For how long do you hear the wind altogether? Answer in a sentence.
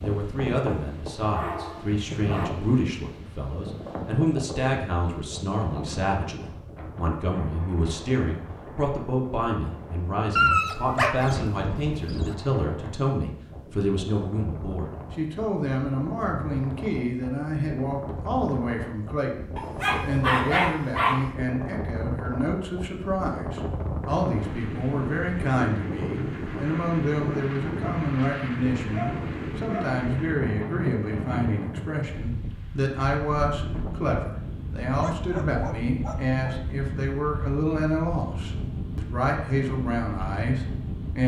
You can hear the wind for 41 seconds altogether.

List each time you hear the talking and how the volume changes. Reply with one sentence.
You can hear the talking from 0.0 to 41.2 s, at a steady volume.